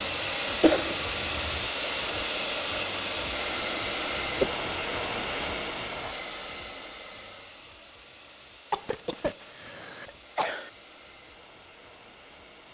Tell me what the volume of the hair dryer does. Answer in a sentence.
The volume of the hair dryer goes down.